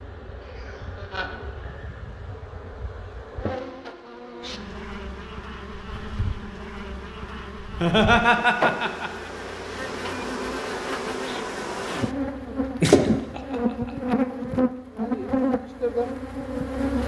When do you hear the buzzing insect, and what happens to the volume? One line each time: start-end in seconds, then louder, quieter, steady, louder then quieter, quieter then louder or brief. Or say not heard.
0.0-17.0 louder.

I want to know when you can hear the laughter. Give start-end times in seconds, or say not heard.
0.5-1.4, 7.7-9.3, 12.8-13.6.